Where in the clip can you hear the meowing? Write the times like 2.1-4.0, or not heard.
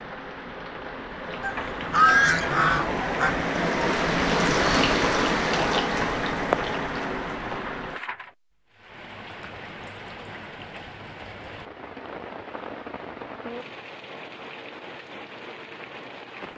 not heard.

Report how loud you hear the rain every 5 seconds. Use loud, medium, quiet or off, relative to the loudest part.
loud, loud, quiet, quiet.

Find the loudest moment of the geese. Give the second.
2 s.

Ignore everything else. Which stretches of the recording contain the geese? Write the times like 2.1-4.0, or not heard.
1.4-3.4.